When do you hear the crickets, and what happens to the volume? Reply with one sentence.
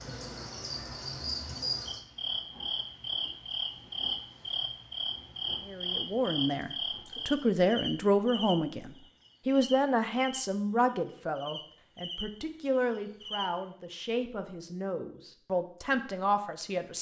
The crickets can be heard from 0.0 to 13.4 s, getting quieter.